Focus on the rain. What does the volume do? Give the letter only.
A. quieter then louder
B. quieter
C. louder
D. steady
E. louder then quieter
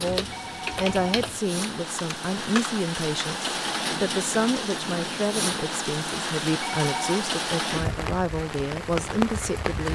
C.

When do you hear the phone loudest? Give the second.
7 s.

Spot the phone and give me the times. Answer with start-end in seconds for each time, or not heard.
0.3-1.1, 6.6-7.2.